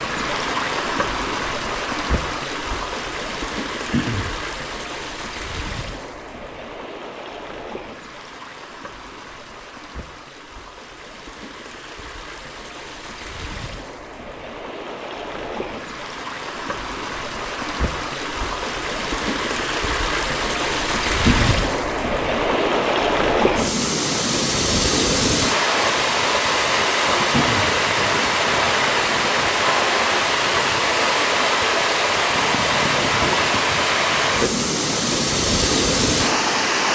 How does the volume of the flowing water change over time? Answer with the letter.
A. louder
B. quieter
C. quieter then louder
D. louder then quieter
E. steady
C.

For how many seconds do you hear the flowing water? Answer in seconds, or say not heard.
37 s.